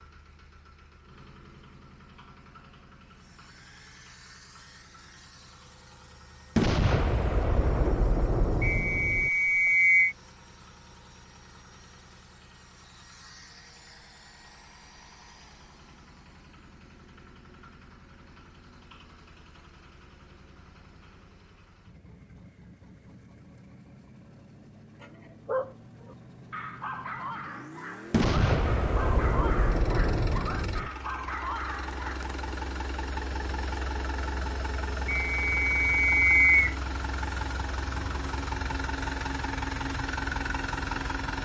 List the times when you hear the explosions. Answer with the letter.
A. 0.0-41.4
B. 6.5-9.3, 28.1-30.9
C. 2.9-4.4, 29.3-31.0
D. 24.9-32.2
B.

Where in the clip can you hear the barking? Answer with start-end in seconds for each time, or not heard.
24.9-32.2.